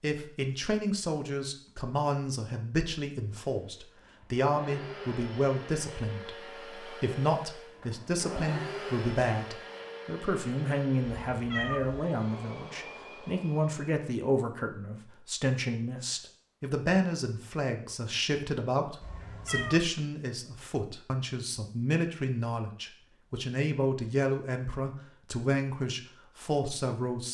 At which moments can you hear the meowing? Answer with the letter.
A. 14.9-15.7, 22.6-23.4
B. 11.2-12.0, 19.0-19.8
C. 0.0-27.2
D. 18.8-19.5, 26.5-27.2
B.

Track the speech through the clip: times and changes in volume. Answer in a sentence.
The speech can be heard from 0.0 to 27.2 s, at a steady volume.